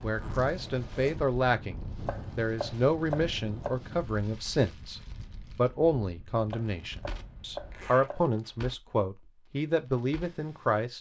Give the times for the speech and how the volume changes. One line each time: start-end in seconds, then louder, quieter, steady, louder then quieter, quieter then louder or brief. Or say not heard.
0.0-10.9 steady.